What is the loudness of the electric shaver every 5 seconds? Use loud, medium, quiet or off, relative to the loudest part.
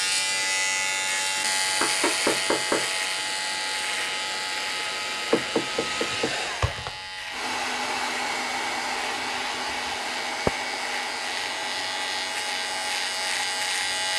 loud, medium, loud.